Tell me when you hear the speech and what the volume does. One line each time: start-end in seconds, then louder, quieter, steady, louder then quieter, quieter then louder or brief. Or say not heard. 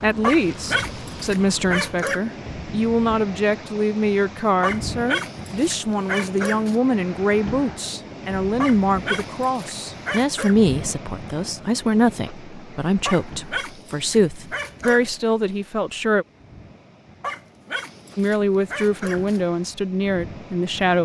0.0-16.2 steady
18.1-20.9 brief.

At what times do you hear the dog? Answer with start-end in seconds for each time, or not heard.
0.2-2.2, 4.6-6.8, 8.6-10.6, 13.1-15.2, 17.2-19.4.